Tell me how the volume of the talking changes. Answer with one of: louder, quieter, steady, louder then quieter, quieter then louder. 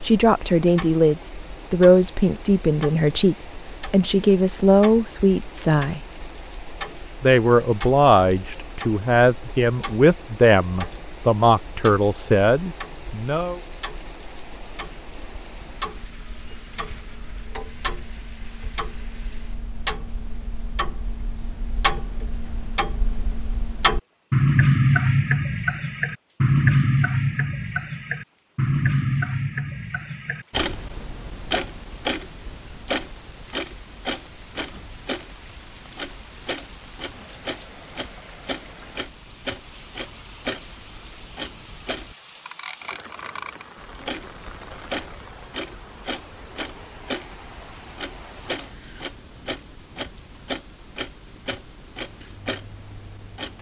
steady.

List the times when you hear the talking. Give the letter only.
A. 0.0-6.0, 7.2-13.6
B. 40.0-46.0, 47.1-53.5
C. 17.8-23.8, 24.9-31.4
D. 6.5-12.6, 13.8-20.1
A.